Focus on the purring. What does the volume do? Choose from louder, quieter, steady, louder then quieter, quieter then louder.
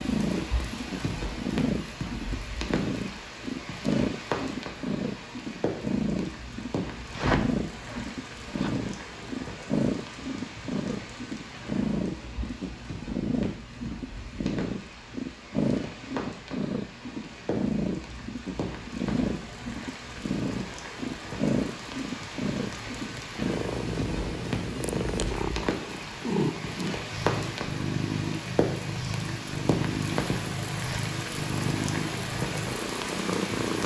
steady.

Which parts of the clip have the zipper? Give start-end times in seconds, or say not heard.
7.1-8.7.